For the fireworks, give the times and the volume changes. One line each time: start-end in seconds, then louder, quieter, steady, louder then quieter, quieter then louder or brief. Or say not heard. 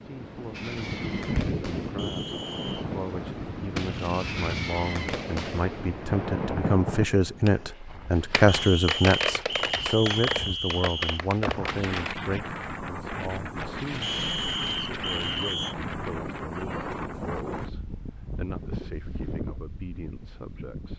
0.5-12.2 louder.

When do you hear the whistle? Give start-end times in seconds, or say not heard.
1.9-2.9, 8.4-11.2, 14.0-15.8.